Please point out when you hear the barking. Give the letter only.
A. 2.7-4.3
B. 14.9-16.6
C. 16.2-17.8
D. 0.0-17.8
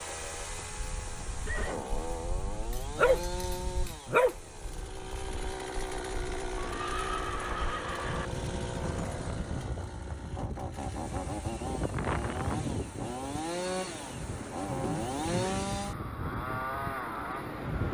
A.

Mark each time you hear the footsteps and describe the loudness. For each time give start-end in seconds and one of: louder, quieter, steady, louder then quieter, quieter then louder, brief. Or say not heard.
not heard.